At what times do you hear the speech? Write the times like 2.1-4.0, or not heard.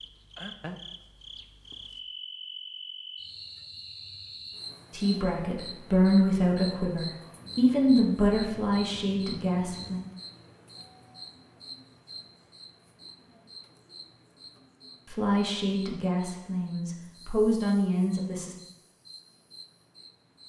4.9-10.0, 15.1-18.6.